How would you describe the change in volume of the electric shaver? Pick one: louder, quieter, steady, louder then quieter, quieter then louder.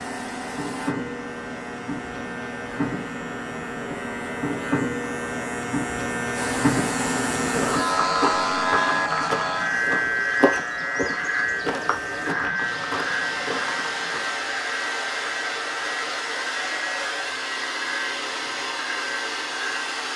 louder then quieter.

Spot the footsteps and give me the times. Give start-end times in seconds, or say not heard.
7.5-14.4.